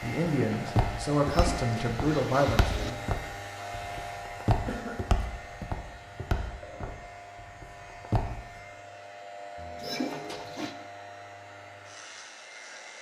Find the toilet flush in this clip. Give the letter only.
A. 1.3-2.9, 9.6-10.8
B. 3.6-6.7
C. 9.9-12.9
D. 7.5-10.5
A.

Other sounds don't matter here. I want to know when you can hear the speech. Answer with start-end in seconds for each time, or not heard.
0.0-3.0.